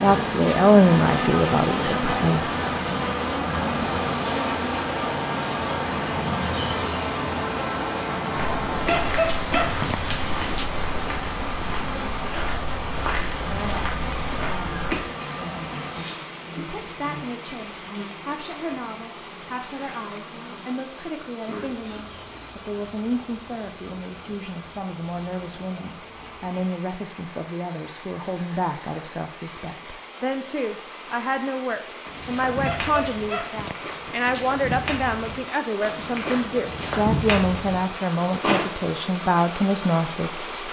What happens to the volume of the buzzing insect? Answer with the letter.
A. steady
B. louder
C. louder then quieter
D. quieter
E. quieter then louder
D.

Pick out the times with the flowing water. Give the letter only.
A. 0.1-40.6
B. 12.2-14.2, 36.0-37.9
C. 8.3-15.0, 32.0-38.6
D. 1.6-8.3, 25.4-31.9
A.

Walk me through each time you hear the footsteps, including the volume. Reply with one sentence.
You can hear the footsteps from 8.3 to 15.0 s, at a steady volume; and from 32.0 to 38.6 s, getting louder.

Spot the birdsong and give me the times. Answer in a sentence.
The birdsong can't be heard in this clip.